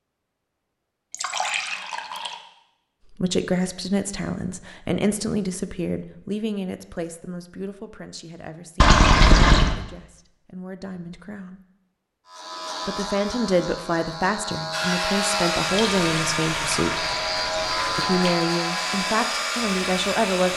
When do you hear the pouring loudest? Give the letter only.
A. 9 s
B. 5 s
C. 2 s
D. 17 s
A.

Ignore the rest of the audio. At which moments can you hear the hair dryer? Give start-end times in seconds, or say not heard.
14.7-20.5.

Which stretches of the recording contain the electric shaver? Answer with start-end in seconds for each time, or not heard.
12.2-20.5.